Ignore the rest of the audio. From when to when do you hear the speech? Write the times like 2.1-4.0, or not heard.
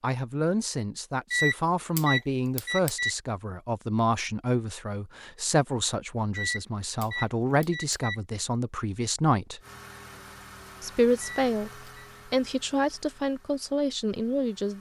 0.0-9.6, 10.8-11.7, 12.3-14.7.